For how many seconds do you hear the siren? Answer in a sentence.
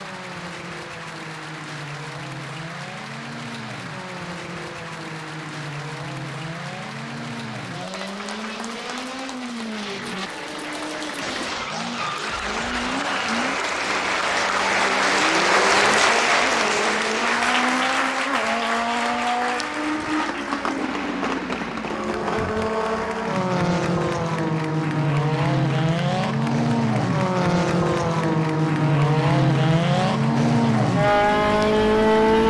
You can't hear the siren here.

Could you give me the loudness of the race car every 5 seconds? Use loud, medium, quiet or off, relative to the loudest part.
quiet, quiet, quiet, medium, medium, loud, loud.